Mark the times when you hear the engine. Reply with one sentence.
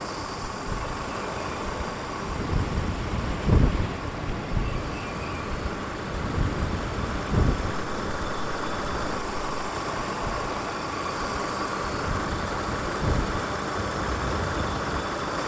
The engine can be heard from 0.0 to 15.4 s.